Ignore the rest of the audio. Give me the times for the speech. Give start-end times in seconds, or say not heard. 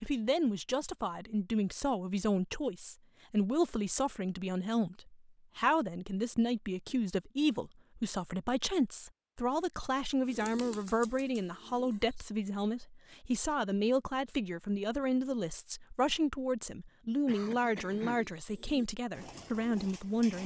0.0-20.4.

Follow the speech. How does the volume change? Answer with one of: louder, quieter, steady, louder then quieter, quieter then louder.
steady.